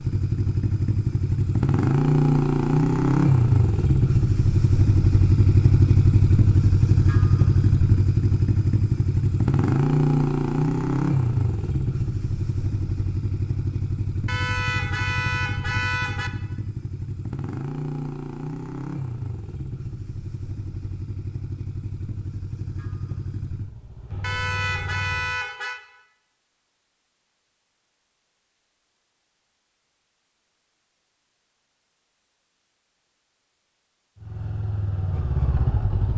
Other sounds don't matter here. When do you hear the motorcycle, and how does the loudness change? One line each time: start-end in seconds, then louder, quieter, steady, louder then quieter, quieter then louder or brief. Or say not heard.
0.0-25.4 quieter
34.1-36.1 brief.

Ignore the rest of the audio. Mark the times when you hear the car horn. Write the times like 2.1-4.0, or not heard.
14.2-16.3, 24.2-25.8.